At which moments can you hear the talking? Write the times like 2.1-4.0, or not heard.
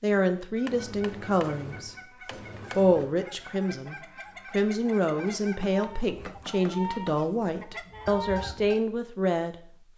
0.0-1.9, 2.8-9.8.